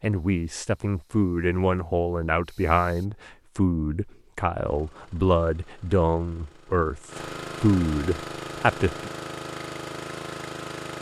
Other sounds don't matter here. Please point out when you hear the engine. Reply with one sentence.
You can hear the engine from 4.6 to 10.9 s.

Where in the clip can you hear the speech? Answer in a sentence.
You can hear the speech from 0.0 to 9.1 s.